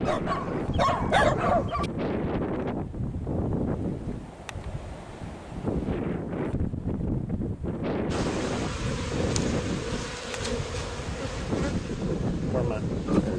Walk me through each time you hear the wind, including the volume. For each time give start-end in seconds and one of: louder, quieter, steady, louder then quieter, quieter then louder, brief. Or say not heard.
0.0-13.3 steady.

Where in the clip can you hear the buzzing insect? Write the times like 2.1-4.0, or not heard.
8.1-13.3.